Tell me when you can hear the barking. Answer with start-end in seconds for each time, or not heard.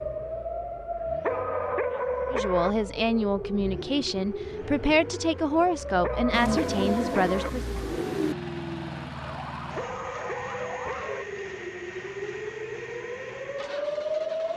1.2-2.8, 6.0-7.5, 9.8-11.2.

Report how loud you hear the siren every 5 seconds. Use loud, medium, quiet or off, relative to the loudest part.
loud, medium, loud.